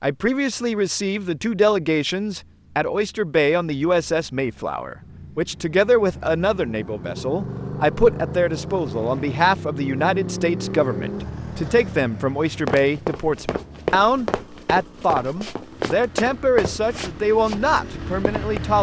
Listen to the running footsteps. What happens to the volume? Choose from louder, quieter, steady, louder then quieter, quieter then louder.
quieter.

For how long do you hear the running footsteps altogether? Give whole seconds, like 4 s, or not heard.
6 s.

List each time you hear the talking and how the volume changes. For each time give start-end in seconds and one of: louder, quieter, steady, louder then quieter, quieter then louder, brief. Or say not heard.
0.0-18.7 steady.